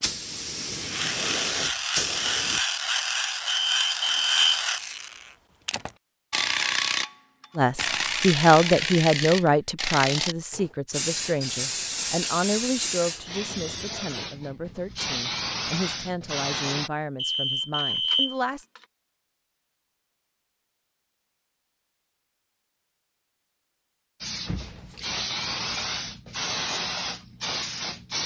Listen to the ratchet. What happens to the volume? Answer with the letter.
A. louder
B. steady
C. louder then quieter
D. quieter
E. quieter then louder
B.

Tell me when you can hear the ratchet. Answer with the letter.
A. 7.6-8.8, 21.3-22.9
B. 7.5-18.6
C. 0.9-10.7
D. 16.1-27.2
C.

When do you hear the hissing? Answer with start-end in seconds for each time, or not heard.
0.0-2.6, 10.9-16.9, 24.2-28.2.